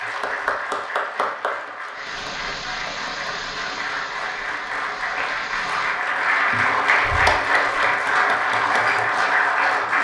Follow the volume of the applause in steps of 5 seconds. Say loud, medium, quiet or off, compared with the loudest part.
medium, loud.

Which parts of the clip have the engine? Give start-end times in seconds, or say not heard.
1.9-6.0.